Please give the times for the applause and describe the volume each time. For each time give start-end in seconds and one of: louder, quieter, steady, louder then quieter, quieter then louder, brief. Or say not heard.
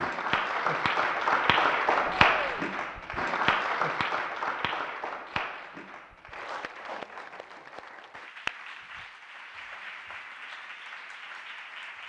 0.0-12.0 quieter.